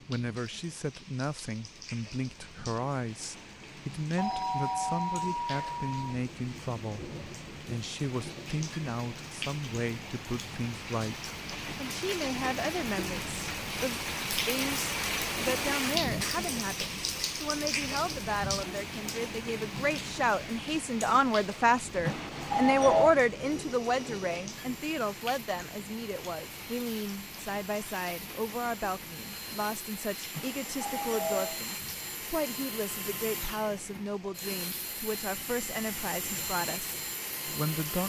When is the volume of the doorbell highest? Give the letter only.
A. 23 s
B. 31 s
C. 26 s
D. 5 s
A.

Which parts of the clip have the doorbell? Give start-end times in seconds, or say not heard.
4.2-6.2, 22.1-23.1, 30.3-31.6.